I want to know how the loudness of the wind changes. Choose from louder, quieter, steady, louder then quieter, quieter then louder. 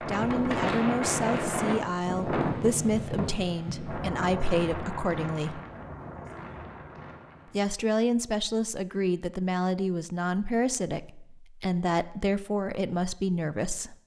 quieter.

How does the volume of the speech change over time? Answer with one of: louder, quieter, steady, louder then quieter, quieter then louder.
steady.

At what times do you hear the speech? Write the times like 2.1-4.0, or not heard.
0.0-5.6, 7.5-13.9.